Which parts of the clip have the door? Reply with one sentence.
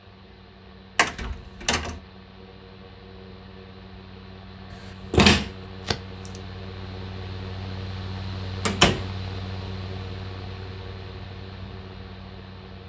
You can hear the door from 0.9 to 2.0 s, from 5.1 to 6.0 s and from 8.7 to 9.1 s.